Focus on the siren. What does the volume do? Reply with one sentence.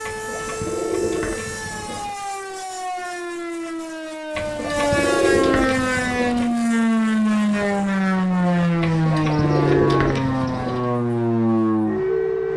The loudness of the siren goes up.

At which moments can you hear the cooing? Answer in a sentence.
You can hear the cooing from 0.0 to 2.1 s, from 4.3 to 6.5 s and from 8.8 to 10.9 s.